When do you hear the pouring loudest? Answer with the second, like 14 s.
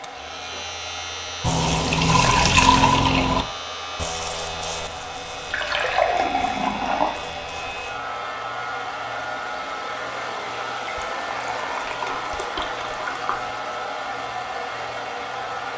3 s.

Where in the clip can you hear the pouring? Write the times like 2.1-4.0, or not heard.
1.4-3.5, 5.5-7.2, 10.8-13.4.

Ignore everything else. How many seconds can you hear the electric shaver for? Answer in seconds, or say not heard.
16 s.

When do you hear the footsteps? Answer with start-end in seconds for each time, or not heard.
not heard.